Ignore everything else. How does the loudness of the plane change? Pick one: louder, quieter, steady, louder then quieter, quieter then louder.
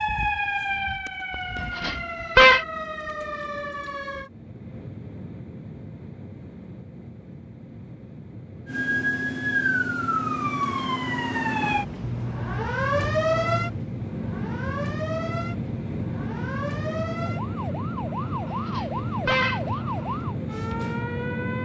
louder.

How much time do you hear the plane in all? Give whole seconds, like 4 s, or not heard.
17 s.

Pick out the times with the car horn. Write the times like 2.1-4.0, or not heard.
1.8-2.6, 18.6-19.6.